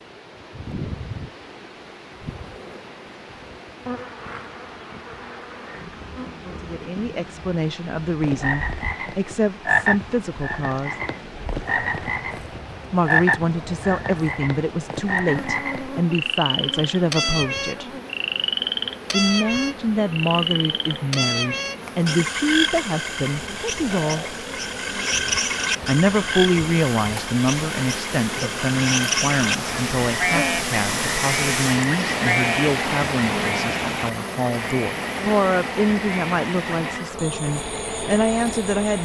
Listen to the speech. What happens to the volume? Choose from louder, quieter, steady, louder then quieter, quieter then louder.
steady.